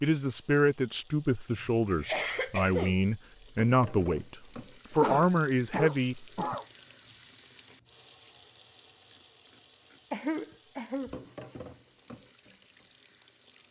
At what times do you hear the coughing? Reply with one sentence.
You can hear the coughing from 1.9 to 3.0 s, from 5.0 to 6.7 s and from 10.1 to 11.2 s.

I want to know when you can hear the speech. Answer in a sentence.
The speech can be heard from 0.0 to 6.5 s.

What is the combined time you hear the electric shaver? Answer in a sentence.
You can't hear the electric shaver here.